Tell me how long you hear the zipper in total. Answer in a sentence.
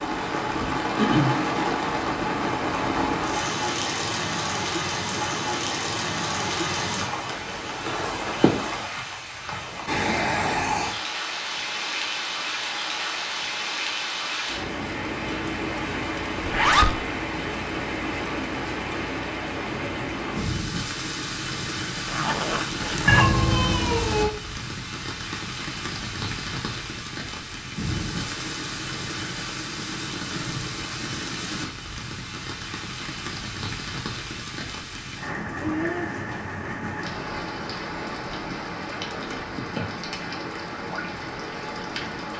You can hear the zipper for 2 seconds altogether.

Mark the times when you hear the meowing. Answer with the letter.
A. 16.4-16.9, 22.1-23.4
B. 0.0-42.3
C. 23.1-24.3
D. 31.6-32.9
C.